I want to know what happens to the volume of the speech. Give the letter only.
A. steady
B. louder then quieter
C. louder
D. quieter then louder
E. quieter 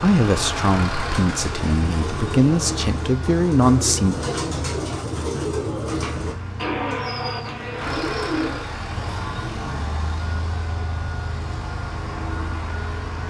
C.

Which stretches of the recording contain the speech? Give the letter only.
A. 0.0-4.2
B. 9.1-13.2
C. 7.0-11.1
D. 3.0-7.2
A.